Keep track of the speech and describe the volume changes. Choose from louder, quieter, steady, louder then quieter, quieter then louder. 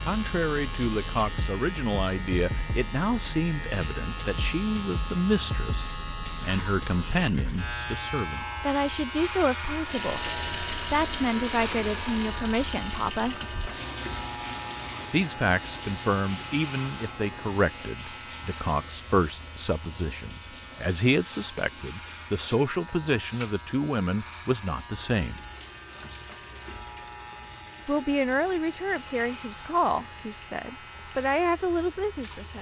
steady.